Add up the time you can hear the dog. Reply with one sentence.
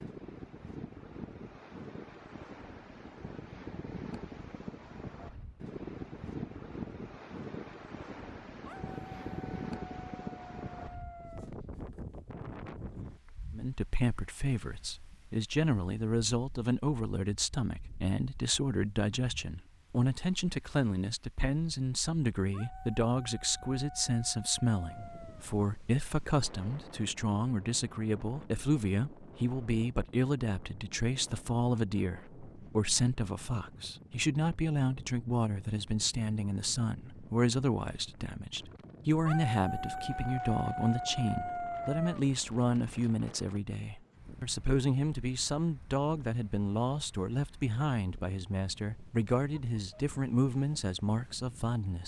You can hear the dog for 9 seconds altogether.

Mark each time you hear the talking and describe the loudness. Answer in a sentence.
The talking can be heard from 13.5 to 52.0 s, at a steady volume.